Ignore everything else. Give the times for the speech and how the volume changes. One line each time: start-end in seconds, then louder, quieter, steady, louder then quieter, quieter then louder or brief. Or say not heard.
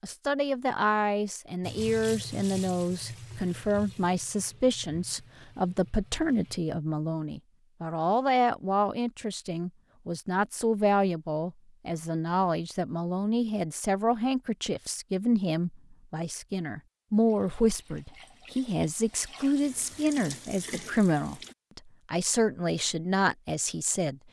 0.0-24.2 steady.